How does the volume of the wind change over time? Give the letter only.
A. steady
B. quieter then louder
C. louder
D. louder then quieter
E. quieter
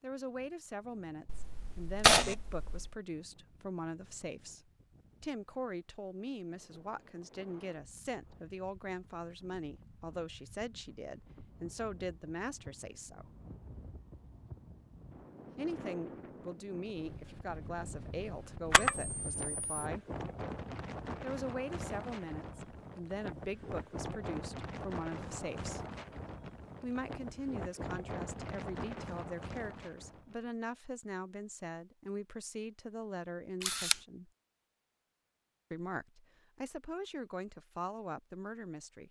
C.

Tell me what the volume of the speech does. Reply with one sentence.
The volume of the speech stays about the same.